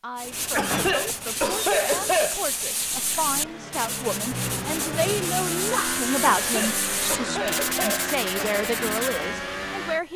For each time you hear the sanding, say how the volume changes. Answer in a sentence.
The sanding can be heard from 0.1 to 9.2 s, at a steady volume.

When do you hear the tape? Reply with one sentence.
You can't hear the tape here.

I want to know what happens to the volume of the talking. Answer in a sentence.
The loudness of the talking goes up.